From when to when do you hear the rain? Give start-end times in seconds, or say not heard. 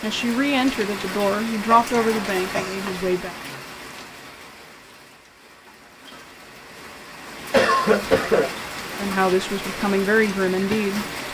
0.0-11.2.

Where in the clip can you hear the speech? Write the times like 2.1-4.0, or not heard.
0.0-3.4, 8.9-11.1.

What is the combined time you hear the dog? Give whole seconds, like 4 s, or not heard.
not heard.